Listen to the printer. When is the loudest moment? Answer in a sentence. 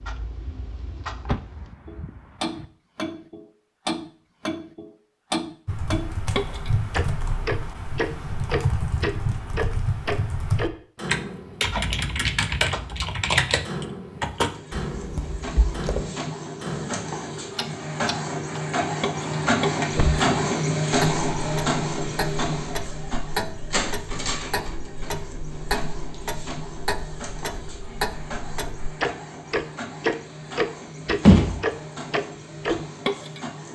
The loudest moment of the printer is at 21 seconds.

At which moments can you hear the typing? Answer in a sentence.
The typing can be heard from 5.7 to 16.1 s.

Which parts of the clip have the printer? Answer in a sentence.
The printer can be heard from 14.3 to 33.6 s.